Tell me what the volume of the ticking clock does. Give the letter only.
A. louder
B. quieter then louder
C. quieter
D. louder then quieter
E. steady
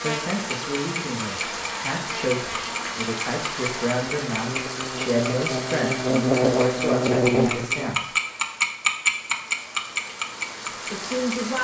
A.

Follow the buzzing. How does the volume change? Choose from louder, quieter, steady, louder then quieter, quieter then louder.
louder.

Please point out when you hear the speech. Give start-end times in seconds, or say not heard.
0.0-8.1, 10.9-11.5.